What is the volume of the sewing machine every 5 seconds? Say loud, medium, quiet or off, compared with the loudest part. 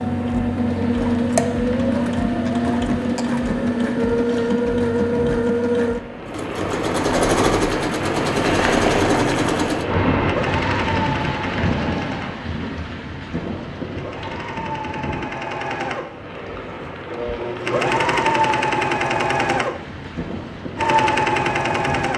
loud, loud, medium, loud, loud.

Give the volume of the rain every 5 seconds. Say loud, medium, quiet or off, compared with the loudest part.
medium, loud, loud, medium, medium.